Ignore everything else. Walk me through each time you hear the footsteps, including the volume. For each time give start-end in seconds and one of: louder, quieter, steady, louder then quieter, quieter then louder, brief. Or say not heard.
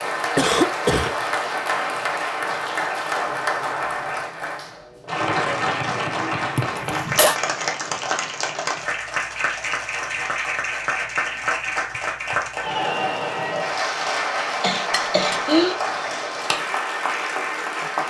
not heard.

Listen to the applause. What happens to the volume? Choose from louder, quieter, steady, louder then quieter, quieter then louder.
steady.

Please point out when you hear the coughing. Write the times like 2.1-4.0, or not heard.
0.3-1.1, 6.5-7.4, 14.6-15.8.